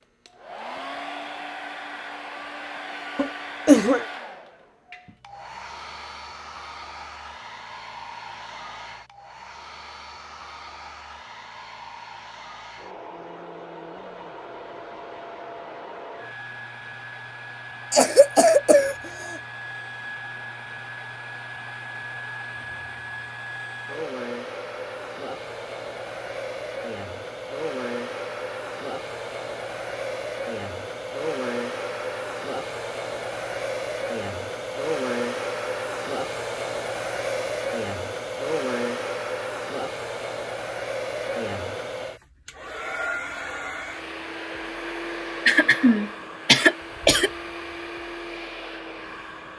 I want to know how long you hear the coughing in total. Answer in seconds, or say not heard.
4 s.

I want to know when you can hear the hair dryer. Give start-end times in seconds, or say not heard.
0.0-49.5.